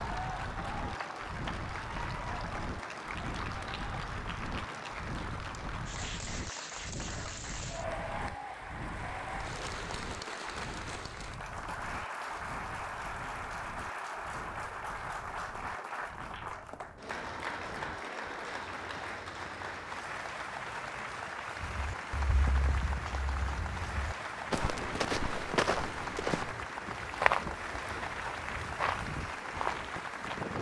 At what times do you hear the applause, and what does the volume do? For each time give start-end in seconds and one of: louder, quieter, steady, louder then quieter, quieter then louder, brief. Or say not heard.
0.0-30.5 steady.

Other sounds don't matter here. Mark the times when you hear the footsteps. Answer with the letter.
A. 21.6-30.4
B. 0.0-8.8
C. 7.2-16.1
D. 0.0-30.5
A.